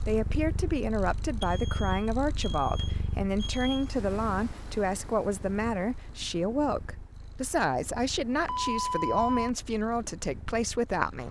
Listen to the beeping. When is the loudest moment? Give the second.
9 s.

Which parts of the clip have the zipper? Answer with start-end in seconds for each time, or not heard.
not heard.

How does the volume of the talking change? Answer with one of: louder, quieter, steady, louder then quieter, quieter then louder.
steady.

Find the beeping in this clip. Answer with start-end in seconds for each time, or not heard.
1.4-3.9, 8.4-9.5.